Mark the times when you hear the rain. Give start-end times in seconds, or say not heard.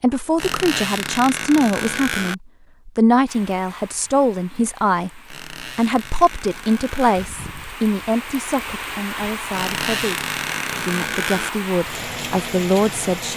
3.2-13.3.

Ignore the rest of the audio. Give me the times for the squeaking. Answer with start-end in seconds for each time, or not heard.
0.3-2.4, 5.2-7.2, 9.5-11.5.